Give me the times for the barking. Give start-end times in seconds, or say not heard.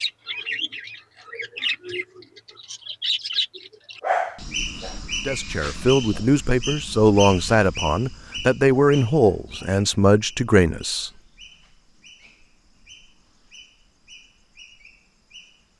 4.0-5.0.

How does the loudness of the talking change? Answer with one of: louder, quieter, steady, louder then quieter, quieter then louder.
steady.